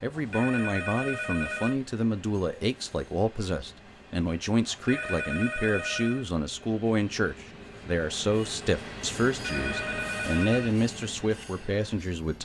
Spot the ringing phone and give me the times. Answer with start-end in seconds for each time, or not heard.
0.1-1.8, 4.7-6.2, 9.3-10.8.